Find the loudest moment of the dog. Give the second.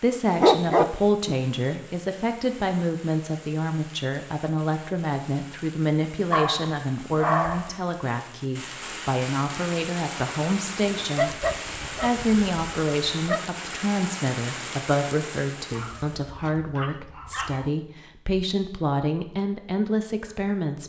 1 s.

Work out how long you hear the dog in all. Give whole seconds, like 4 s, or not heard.
7 s.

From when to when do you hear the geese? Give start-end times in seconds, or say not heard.
not heard.